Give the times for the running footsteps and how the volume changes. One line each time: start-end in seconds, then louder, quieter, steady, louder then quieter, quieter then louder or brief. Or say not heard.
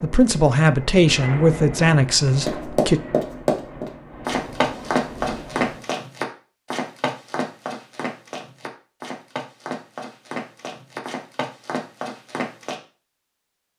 2.5-12.8 quieter.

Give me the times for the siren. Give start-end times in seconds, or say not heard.
not heard.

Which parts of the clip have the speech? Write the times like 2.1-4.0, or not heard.
0.0-3.0.